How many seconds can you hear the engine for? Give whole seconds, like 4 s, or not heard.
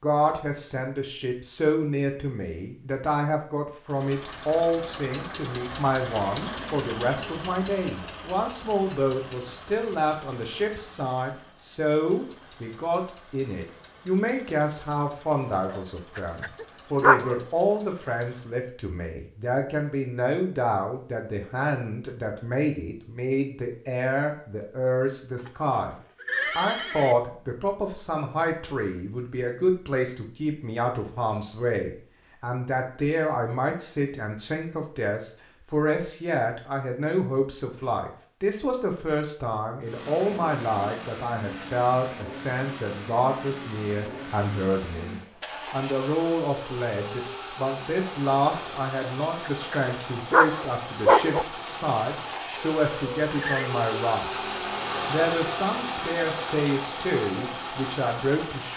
34 s.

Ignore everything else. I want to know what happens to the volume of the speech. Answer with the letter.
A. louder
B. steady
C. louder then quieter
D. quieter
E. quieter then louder
B.